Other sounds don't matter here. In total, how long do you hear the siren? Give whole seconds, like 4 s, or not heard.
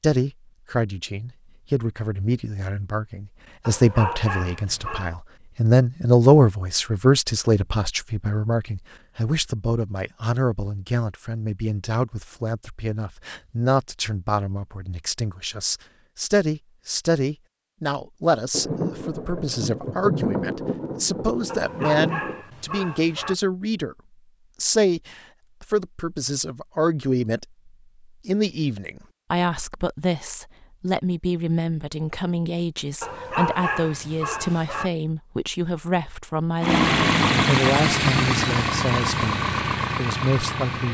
not heard.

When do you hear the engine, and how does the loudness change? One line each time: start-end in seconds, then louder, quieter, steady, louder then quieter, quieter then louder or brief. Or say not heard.
36.6-40.8 quieter.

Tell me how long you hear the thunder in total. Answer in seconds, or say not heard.
4 s.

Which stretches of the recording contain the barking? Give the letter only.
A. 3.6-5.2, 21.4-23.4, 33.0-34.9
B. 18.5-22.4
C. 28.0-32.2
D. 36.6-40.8
A.